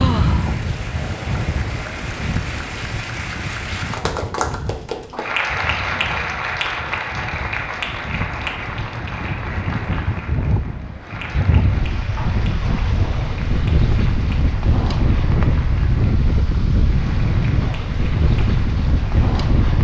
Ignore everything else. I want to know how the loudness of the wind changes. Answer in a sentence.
The loudness of the wind goes down, then up.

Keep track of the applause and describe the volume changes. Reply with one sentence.
The volume of the applause goes up, then down.